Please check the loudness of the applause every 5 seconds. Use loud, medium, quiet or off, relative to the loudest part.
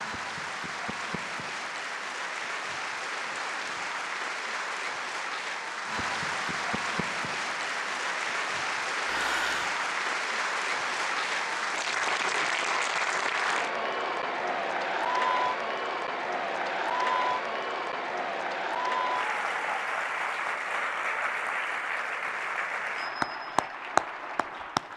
medium, loud, loud, loud, loud.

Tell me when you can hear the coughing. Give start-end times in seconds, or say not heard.
9.1-9.7.